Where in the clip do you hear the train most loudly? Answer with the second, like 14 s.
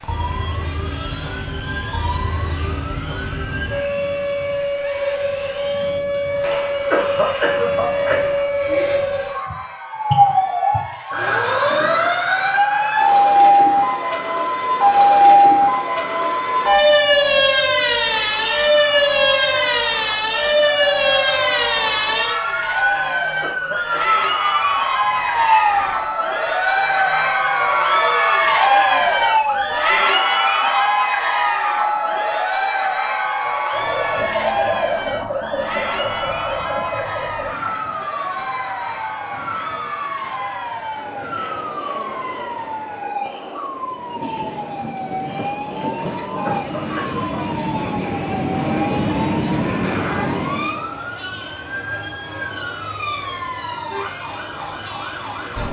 49 s.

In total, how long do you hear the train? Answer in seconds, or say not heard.
7 s.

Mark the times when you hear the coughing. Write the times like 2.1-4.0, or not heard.
6.4-9.0, 22.9-24.2, 46.0-47.5.